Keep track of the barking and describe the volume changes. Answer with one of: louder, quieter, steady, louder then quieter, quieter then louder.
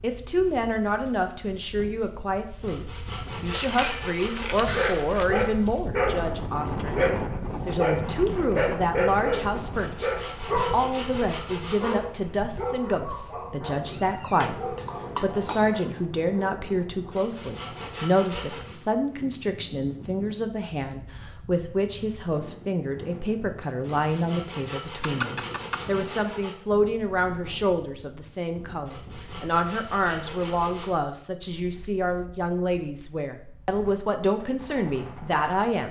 quieter.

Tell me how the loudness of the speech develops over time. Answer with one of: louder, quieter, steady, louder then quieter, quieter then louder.
steady.